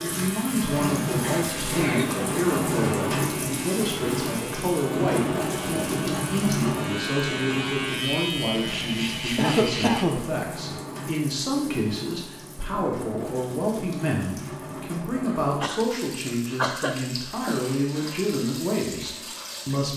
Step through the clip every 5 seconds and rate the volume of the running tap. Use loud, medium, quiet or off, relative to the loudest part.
loud, loud, medium, medium.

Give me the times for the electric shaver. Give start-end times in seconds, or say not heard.
0.0-10.1.